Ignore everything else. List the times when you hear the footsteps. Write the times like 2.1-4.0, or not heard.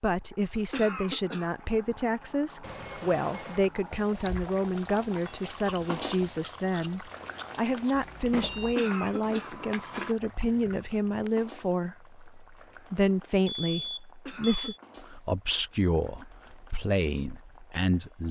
not heard.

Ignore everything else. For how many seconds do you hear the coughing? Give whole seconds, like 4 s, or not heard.
2 s.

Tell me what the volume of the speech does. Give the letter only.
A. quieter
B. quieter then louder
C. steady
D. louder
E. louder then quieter
C.